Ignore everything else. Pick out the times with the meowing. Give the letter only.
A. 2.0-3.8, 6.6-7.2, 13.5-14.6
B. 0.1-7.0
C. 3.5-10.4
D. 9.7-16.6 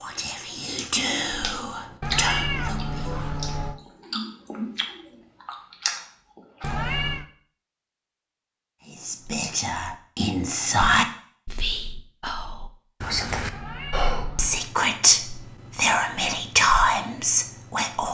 A.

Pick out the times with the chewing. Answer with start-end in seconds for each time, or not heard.
0.1-7.0.